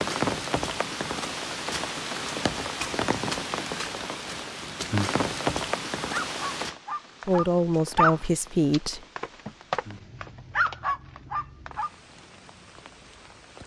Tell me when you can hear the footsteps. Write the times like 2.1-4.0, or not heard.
not heard.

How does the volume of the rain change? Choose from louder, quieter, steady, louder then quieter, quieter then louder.
quieter.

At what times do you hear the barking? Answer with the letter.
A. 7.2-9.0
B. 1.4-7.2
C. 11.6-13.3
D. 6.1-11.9
D.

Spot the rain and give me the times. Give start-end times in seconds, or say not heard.
0.0-13.6.